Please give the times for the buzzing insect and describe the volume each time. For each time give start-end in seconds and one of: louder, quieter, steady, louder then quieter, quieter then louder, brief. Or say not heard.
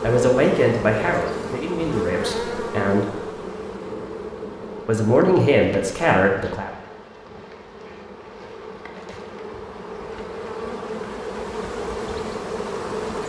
0.0-13.2 quieter then louder.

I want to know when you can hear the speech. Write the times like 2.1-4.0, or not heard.
0.0-3.1, 4.8-6.7.